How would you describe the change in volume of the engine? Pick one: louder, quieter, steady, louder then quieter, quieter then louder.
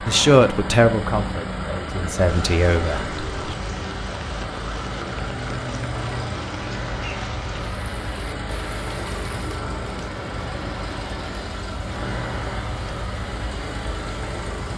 steady.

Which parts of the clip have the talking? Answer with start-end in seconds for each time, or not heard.
0.1-3.5.